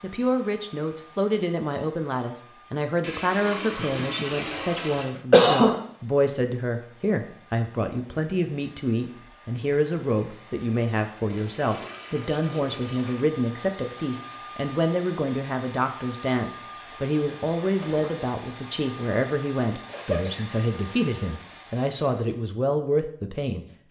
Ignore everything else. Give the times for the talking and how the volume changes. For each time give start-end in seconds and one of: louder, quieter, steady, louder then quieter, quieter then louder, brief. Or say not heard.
0.0-23.8 steady.